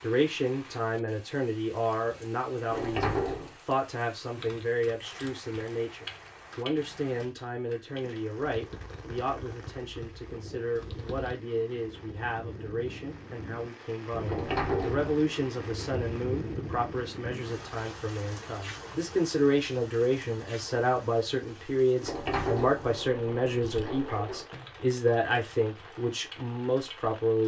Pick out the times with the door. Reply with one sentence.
You can hear the door from 2.7 to 3.5 s, from 14.2 to 15.1 s and from 22.0 to 24.4 s.